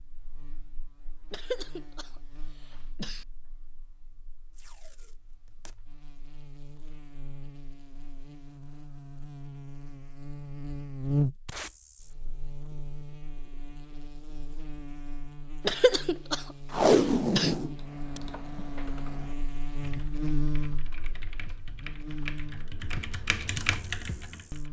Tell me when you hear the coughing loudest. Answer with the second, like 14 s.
16 s.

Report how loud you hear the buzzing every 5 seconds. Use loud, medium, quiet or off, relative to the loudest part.
quiet, quiet, loud, medium, loud.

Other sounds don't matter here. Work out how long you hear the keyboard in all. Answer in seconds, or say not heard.
7 s.